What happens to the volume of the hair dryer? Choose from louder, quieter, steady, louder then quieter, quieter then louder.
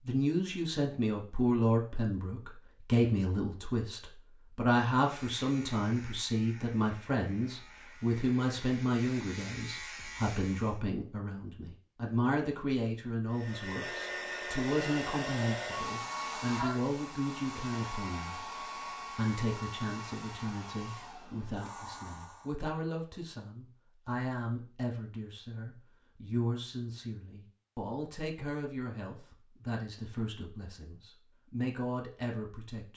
quieter.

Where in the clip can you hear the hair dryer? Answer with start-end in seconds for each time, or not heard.
13.3-22.6.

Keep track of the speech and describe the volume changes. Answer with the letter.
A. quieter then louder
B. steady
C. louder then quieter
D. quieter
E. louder
D.